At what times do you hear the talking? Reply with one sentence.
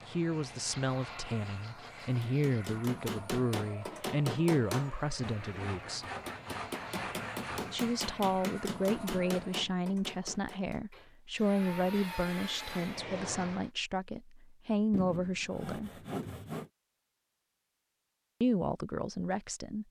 You can hear the talking from 0.1 to 6.0 s, from 7.7 to 15.9 s and from 18.4 to 19.8 s.